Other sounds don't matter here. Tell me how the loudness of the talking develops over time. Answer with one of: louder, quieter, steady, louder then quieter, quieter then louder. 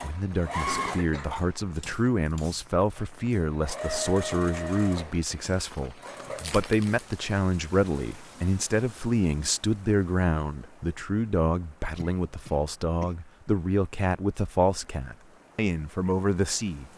steady.